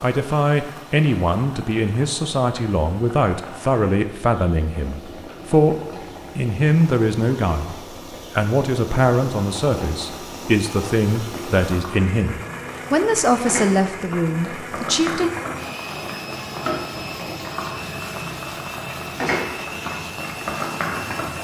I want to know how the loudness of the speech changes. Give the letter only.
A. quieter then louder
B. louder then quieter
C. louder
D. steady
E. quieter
D.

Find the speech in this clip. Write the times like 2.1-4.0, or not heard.
0.0-15.3.